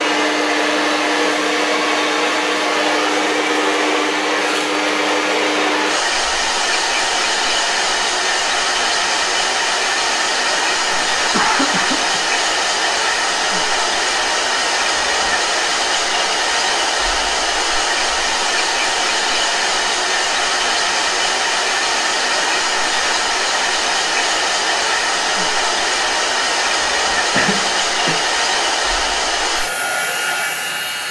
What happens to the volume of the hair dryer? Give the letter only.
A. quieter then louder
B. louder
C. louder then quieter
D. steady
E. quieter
D.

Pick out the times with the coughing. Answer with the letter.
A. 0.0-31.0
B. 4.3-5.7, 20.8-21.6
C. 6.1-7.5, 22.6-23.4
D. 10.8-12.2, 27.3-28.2
D.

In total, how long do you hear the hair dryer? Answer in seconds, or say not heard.
31 s.